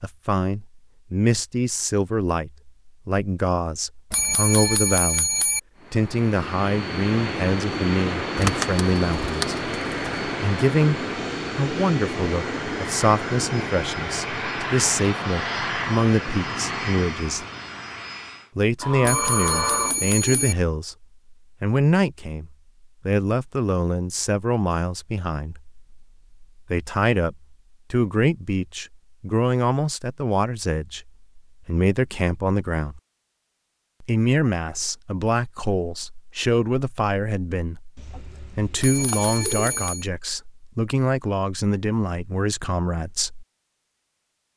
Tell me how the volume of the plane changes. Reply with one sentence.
The loudness of the plane stays about the same.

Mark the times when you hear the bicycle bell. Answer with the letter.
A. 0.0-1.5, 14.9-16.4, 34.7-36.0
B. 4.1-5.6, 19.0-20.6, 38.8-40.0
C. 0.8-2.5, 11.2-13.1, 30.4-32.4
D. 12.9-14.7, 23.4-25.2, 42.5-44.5
B.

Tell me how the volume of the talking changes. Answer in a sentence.
The loudness of the talking stays about the same.